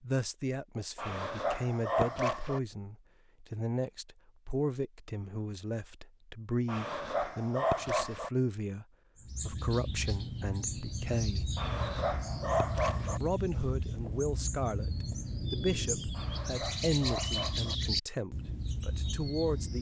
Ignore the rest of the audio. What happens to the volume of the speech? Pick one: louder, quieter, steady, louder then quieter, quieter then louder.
steady.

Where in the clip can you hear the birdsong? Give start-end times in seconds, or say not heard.
9.2-19.7.